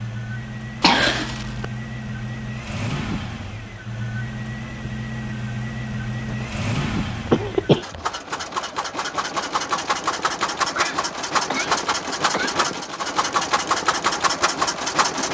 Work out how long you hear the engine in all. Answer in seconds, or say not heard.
15 s.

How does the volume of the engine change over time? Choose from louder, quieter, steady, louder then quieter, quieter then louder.
louder.